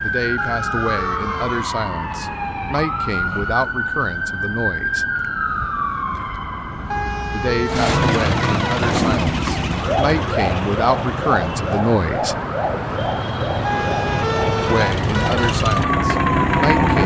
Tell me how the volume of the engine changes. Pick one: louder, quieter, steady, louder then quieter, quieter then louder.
quieter then louder.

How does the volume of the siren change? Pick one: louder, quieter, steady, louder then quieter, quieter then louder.
steady.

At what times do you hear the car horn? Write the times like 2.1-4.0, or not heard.
0.3-1.8, 6.9-8.9, 13.6-15.6.